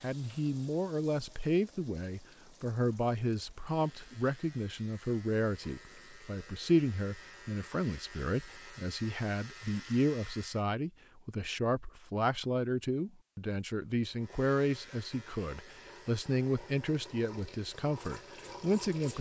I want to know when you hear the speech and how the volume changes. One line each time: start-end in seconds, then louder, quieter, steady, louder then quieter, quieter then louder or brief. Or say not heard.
0.0-19.1 steady.